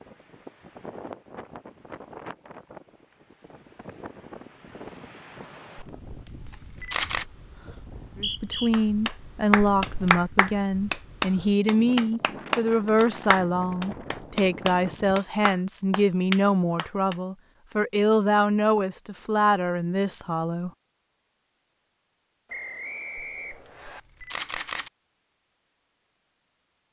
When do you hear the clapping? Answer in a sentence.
You can hear the clapping from 8.7 to 17.1 s.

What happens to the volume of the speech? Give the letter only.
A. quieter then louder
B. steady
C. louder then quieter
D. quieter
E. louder
B.